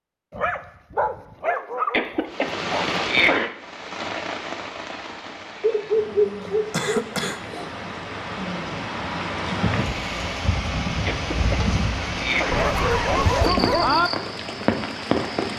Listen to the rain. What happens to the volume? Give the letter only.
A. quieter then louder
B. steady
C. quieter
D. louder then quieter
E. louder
A.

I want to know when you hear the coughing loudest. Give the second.
3 s.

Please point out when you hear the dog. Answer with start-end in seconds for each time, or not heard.
0.3-2.8, 5.6-7.7, 12.5-14.1.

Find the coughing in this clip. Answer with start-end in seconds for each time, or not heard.
1.9-3.5, 6.7-7.4, 11.1-12.7.